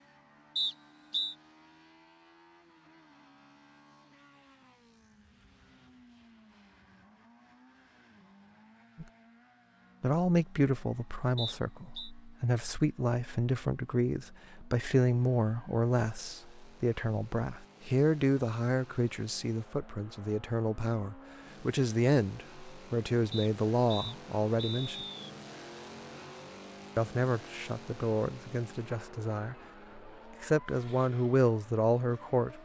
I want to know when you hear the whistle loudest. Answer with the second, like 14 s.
1 s.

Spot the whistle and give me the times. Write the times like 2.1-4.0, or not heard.
0.6-1.4, 11.3-12.1, 23.3-25.3.